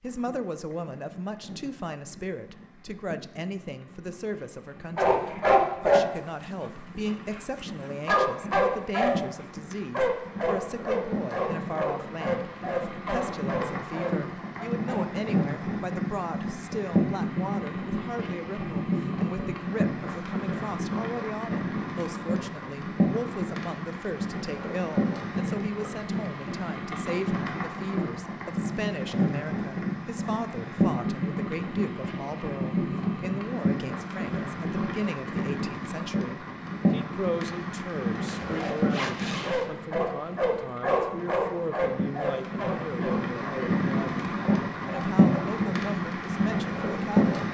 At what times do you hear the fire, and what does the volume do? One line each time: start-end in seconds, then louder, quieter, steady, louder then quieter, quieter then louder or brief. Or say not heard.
0.0-47.4 louder.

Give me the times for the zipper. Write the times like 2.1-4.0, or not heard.
38.2-39.6.